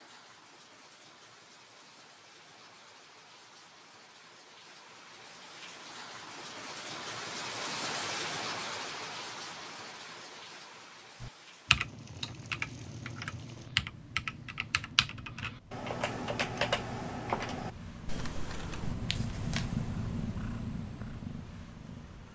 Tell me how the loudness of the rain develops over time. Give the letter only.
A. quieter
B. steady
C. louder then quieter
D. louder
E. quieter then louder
C.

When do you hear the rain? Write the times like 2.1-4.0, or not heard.
0.0-13.8.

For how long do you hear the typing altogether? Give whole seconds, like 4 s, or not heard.
8 s.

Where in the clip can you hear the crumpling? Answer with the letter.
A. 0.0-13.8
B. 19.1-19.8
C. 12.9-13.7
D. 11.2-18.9
B.